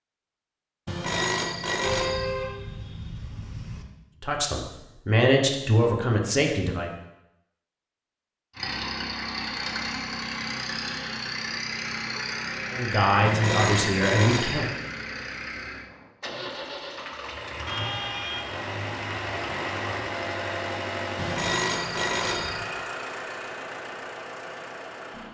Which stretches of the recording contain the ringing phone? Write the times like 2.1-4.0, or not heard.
0.8-2.4, 13.2-14.8, 21.1-22.6.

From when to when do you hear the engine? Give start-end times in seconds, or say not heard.
8.6-25.3.